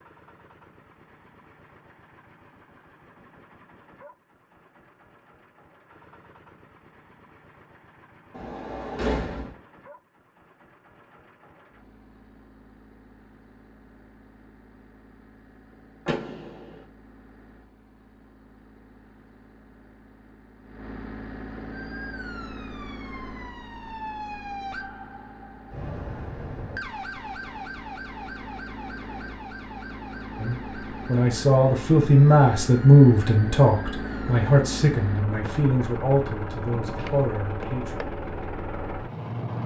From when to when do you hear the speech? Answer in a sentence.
You can hear the speech from 30.4 to 38.1 s.